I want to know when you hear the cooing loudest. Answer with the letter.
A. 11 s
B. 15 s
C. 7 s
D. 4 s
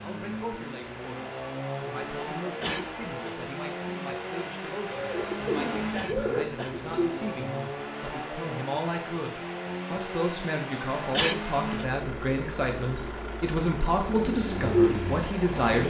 B.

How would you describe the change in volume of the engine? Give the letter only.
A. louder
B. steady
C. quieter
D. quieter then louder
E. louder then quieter
B.